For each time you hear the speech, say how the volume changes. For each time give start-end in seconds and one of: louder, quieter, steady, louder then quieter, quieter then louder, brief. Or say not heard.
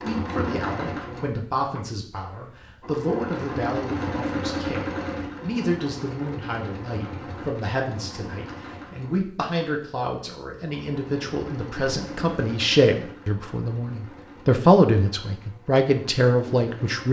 0.0-17.0 louder.